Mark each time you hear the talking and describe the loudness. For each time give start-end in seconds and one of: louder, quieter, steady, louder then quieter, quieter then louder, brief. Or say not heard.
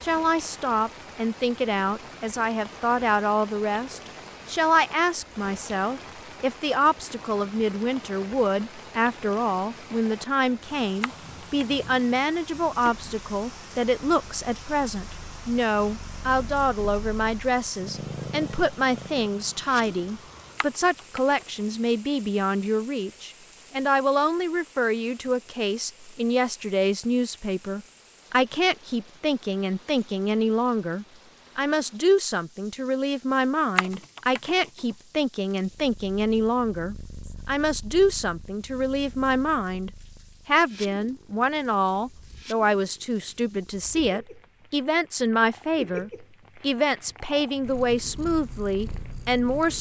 0.0-49.7 steady.